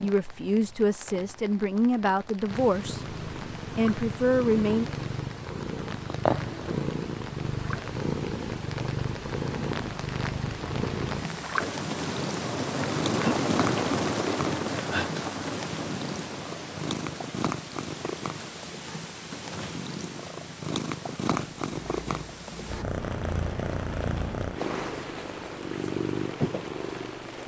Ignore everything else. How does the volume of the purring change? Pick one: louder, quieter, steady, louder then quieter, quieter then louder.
steady.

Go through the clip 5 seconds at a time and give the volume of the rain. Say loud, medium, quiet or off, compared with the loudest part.
quiet, quiet, loud, medium, quiet, quiet.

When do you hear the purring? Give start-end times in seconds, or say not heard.
2.5-27.4.